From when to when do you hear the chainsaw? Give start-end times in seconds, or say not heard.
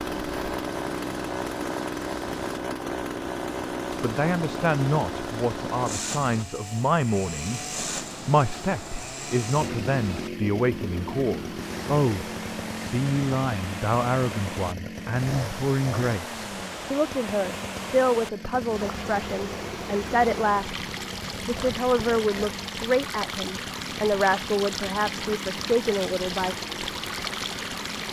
0.0-28.0.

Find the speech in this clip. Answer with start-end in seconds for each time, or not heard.
3.9-7.6, 8.2-20.8, 21.4-26.6.